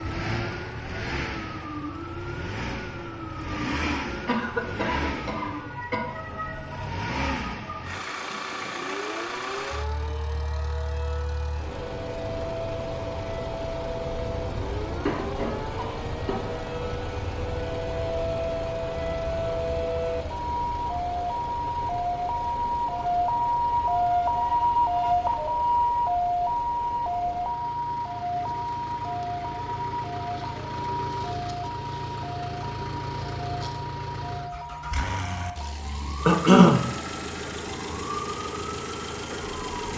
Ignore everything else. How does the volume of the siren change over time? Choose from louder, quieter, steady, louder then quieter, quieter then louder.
louder then quieter.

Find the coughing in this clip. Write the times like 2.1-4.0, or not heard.
4.2-6.0, 15.1-16.4, 36.2-36.9.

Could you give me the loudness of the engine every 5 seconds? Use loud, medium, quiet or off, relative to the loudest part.
loud, loud, loud, loud, medium, medium, loud, loud.